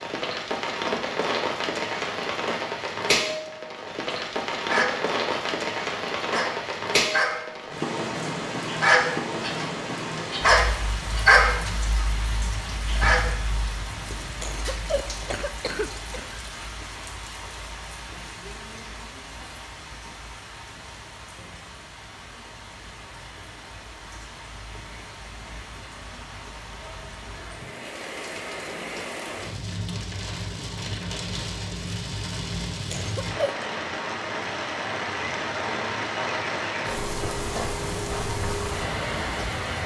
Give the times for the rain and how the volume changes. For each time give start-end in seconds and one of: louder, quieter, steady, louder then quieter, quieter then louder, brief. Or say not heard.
0.0-39.8 quieter then louder.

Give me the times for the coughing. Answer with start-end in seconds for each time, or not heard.
14.4-16.3, 32.9-33.5.